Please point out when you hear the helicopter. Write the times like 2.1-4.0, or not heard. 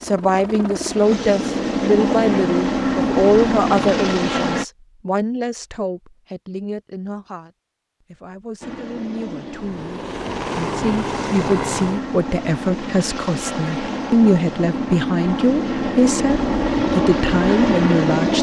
0.0-4.7, 8.6-18.3.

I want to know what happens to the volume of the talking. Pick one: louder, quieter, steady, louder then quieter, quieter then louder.
quieter then louder.